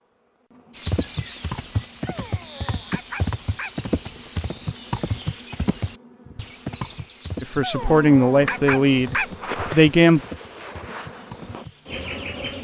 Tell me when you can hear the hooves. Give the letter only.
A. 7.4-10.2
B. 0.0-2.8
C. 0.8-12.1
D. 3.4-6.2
C.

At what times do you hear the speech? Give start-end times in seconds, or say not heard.
7.4-10.2.